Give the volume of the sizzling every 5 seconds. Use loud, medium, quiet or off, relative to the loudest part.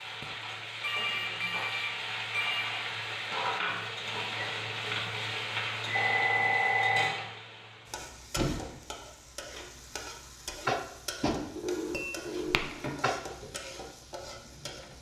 loud, loud, medium.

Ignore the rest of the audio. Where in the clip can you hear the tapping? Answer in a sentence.
You can hear the tapping from 10.7 to 13.2 s.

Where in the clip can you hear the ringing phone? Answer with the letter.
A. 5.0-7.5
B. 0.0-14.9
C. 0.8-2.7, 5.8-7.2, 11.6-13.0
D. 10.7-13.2
C.